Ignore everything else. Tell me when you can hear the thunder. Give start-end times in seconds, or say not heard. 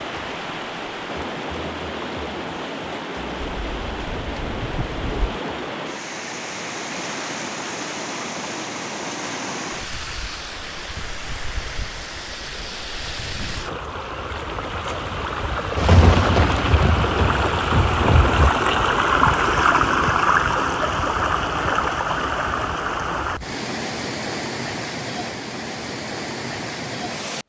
3.4-5.4, 15.8-18.5.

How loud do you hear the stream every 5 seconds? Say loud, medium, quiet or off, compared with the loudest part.
medium, medium, medium, loud, loud, medium.